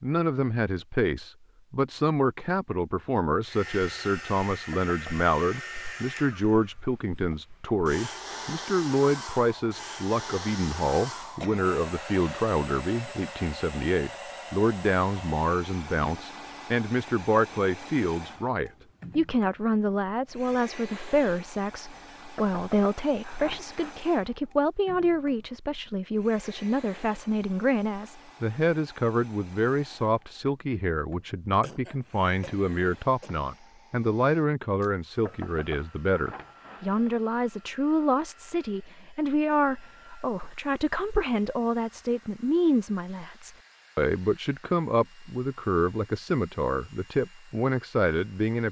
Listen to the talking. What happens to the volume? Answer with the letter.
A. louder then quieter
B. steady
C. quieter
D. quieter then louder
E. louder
B.